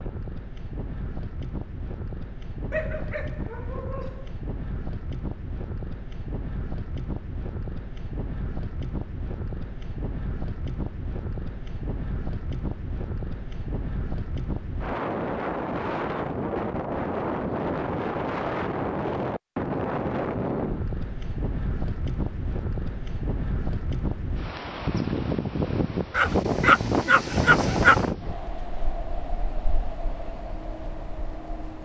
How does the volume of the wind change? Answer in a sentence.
The volume of the wind goes up.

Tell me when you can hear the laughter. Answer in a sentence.
You can't hear the laughter here.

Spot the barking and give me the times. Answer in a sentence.
The barking can be heard from 2.7 to 4.3 s and from 26.1 to 28.1 s.